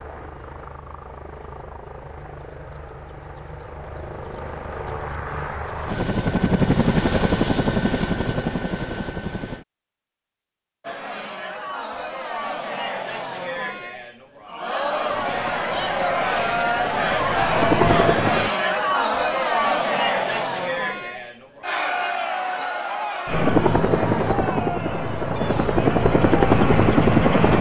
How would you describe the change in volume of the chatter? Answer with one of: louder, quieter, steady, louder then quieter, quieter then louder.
louder then quieter.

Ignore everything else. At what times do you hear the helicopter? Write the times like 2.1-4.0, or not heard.
0.0-9.7, 15.1-18.5, 23.2-27.5.